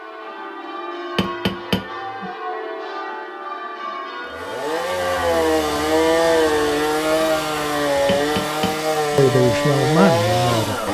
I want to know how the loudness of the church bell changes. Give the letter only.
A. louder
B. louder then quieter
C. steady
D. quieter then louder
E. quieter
C.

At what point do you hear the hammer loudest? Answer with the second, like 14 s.
2 s.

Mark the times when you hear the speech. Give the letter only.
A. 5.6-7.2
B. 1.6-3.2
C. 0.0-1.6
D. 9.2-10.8
D.